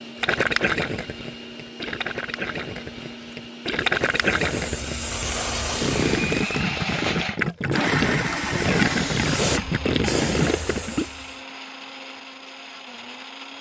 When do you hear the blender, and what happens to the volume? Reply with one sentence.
You can hear the blender from 0.0 to 13.5 s, getting louder then quieter.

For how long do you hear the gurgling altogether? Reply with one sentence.
The gurgling can be heard for 11 seconds in total.